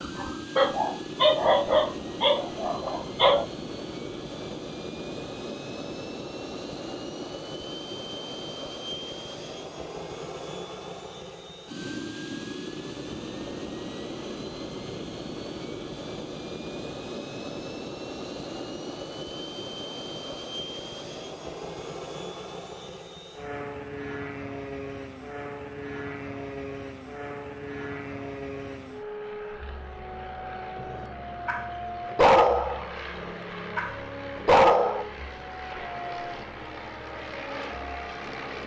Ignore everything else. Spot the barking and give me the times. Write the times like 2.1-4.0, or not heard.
0.0-3.5, 30.9-35.0.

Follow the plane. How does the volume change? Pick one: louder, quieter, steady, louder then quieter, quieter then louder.
steady.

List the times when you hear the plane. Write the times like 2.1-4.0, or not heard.
0.0-38.6.